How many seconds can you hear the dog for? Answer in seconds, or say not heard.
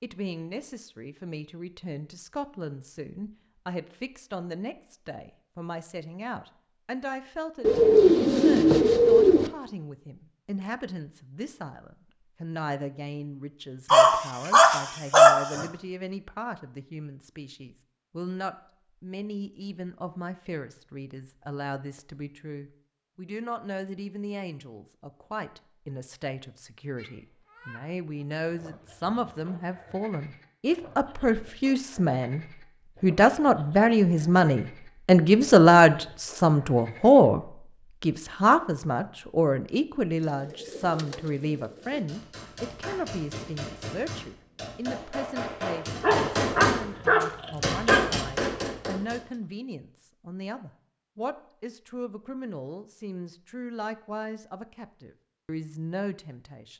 4 s.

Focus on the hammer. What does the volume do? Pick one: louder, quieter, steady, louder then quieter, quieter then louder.
louder.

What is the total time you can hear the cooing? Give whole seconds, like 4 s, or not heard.
4 s.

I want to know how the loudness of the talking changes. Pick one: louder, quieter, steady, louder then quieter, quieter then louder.
louder then quieter.